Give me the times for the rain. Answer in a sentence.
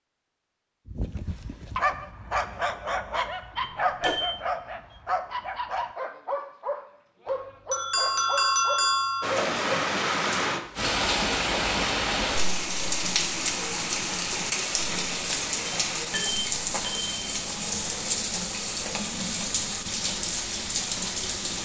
The rain can be heard from 9.2 to 21.6 s.